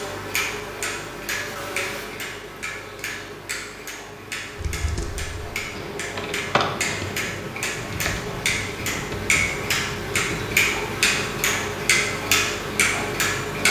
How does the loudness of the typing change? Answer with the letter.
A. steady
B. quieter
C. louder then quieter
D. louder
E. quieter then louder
C.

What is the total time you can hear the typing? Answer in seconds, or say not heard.
6 s.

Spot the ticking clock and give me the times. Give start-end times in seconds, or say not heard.
0.0-13.6.